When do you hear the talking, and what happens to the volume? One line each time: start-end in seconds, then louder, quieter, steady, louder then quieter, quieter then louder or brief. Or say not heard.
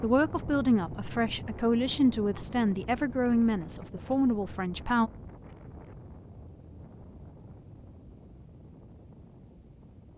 0.0-5.1 steady.